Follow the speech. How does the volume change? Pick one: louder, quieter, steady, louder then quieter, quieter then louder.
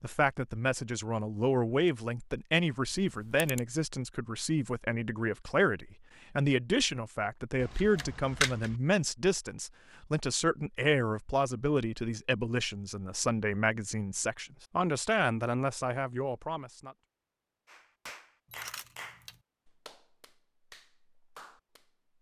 steady.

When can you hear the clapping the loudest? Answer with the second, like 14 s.
19 s.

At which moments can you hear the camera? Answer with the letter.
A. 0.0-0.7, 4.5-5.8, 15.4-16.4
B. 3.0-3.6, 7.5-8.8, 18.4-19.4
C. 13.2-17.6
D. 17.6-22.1
B.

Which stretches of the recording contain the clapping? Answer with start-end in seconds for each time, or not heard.
17.6-22.1.